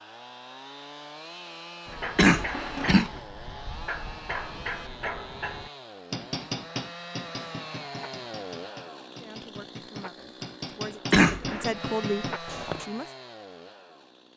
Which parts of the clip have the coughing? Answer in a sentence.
You can hear the coughing from 2.1 to 3.1 s and from 11.1 to 11.7 s.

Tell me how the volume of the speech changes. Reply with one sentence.
The loudness of the speech goes down, then up.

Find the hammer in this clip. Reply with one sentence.
The hammer can be heard from 1.9 to 12.9 s.